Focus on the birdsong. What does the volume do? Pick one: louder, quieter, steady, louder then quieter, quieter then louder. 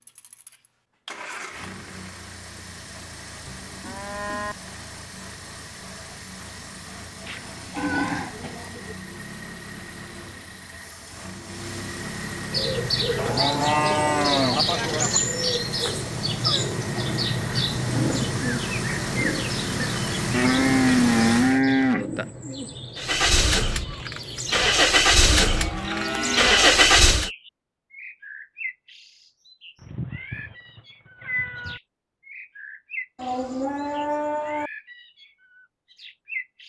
quieter.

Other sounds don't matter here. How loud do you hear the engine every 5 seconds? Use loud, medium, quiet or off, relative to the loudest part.
quiet, quiet, quiet, quiet, medium, loud, off, off.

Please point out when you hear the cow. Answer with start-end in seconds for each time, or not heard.
3.5-4.5, 7.2-8.9, 13.2-15.2, 20.3-22.3, 25.3-26.8, 33.1-34.7.